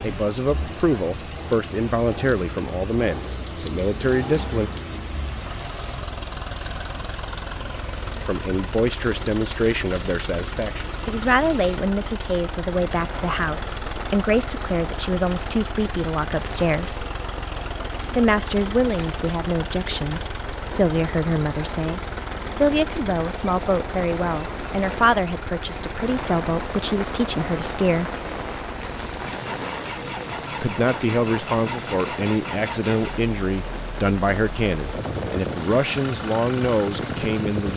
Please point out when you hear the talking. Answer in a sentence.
You can hear the talking from 0.0 to 4.7 s, from 8.2 to 17.1 s, from 18.1 to 28.1 s and from 30.6 to 37.7 s.